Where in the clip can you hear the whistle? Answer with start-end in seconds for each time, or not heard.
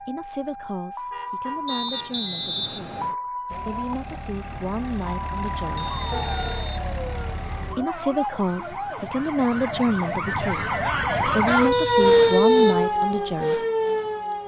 1.6-3.1, 5.8-6.8, 11.7-12.8.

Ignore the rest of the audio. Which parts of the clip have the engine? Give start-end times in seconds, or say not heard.
3.5-7.8.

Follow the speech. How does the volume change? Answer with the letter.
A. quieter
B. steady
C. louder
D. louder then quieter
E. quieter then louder
C.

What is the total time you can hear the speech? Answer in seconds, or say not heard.
12 s.